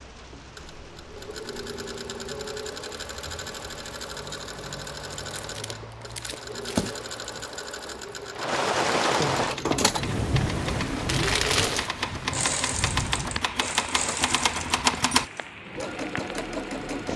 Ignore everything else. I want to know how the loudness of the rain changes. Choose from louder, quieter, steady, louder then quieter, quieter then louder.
louder then quieter.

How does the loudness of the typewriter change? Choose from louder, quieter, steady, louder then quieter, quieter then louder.
louder.